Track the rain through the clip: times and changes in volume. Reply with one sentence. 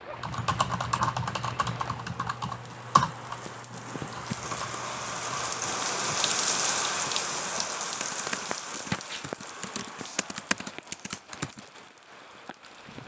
You can hear the rain from 0.0 to 13.0 s, getting louder then quieter.